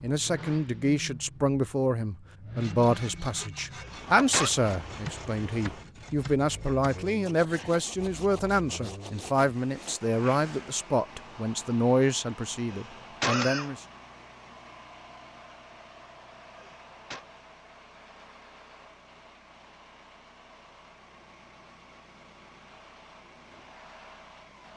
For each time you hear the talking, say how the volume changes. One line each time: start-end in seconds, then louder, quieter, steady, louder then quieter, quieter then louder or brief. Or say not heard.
0.0-13.8 steady.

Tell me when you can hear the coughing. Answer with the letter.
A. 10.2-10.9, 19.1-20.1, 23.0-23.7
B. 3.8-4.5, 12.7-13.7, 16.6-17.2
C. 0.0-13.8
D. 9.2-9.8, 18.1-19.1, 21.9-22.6
B.